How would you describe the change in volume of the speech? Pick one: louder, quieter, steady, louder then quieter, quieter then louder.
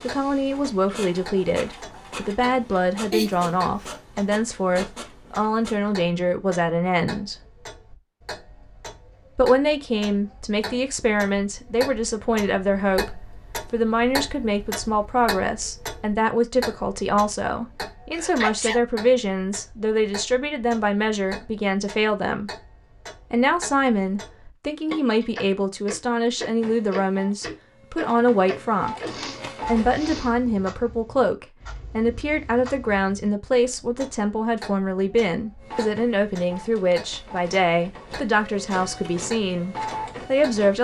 steady.